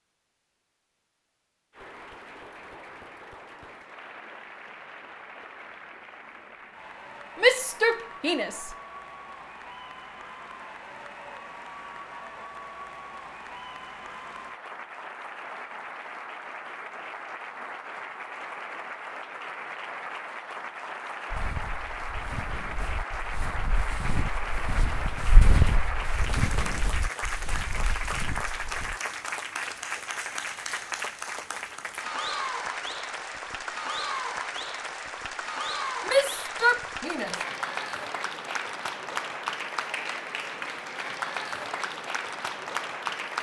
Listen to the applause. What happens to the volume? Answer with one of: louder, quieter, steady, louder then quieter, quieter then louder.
louder.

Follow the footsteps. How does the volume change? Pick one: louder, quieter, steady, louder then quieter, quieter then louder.
louder then quieter.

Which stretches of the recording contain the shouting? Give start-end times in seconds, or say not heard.
7.4-8.7, 36.0-37.4.